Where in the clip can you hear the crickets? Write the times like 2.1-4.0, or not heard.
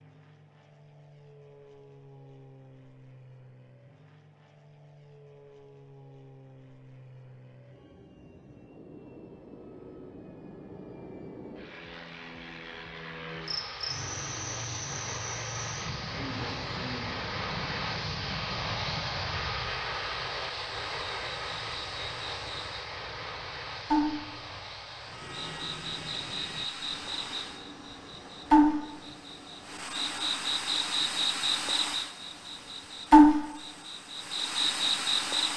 13.4-35.5.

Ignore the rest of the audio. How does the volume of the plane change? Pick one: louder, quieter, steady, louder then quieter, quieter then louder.
louder then quieter.